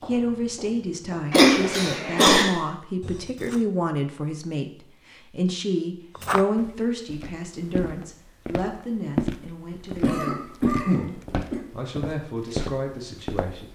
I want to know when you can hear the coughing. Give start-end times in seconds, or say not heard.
1.3-2.5, 10.0-11.6.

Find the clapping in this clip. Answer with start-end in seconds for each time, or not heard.
not heard.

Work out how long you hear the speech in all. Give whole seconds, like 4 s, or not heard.
14 s.